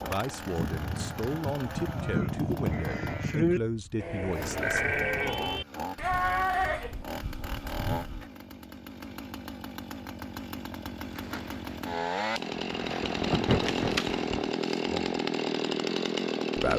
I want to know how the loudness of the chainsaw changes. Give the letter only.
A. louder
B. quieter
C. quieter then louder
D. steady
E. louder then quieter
A.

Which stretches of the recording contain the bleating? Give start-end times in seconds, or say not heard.
0.5-8.2.